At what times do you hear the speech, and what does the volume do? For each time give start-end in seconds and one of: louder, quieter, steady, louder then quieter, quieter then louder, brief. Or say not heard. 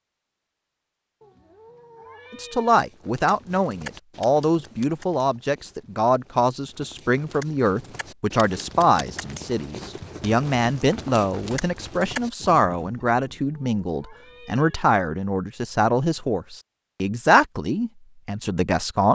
2.3-19.1 steady.